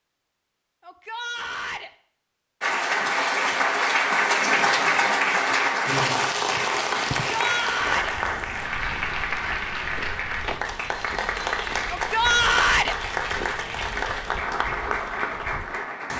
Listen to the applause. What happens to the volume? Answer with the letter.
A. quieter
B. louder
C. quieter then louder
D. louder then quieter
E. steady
A.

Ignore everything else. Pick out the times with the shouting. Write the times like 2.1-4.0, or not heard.
0.8-1.9, 7.3-8.2, 11.8-12.9.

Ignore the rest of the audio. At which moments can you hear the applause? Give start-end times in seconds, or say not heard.
2.6-16.1.